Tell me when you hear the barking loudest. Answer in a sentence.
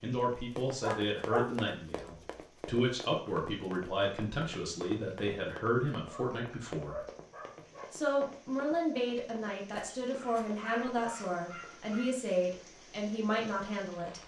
The loudest moment of the barking is at 1 second.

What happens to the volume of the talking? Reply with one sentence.
The loudness of the talking stays about the same.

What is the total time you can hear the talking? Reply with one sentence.
You can hear the talking for 13 seconds altogether.